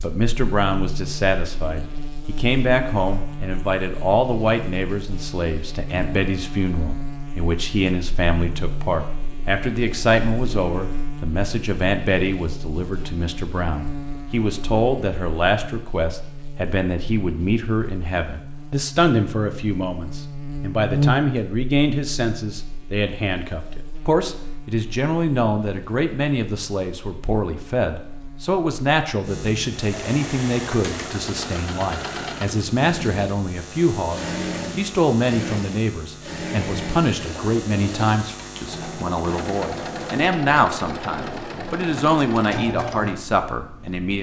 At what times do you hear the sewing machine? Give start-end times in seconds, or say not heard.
29.7-44.1.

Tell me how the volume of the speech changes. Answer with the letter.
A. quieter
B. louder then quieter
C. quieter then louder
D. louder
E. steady
E.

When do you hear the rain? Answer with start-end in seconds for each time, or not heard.
not heard.